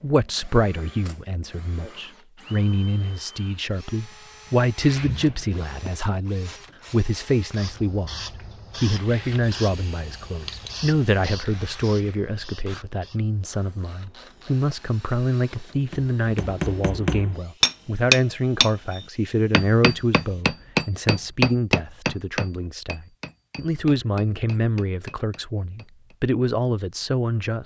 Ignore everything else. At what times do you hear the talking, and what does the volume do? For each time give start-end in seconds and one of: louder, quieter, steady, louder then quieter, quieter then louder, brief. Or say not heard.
0.0-27.6 steady.